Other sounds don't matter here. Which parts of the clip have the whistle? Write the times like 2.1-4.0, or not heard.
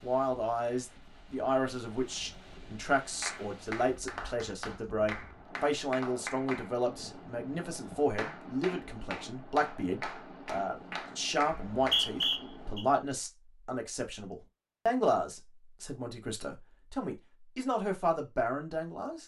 11.5-12.8.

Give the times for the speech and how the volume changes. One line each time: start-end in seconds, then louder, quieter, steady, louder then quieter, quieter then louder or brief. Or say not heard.
0.0-19.2 steady.